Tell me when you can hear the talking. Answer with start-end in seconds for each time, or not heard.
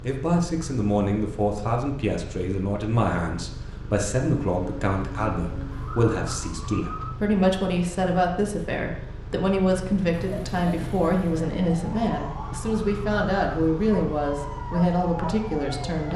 0.0-16.1.